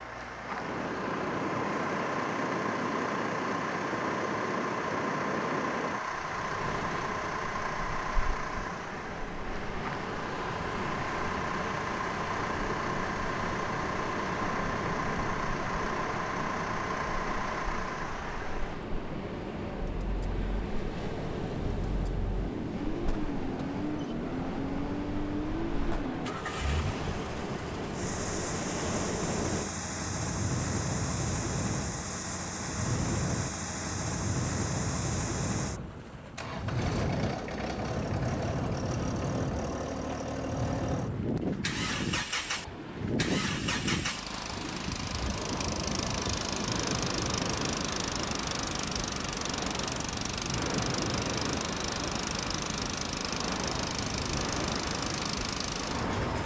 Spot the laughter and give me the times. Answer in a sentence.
You can't hear the laughter here.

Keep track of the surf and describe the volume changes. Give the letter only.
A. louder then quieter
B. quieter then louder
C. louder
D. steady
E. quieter
D.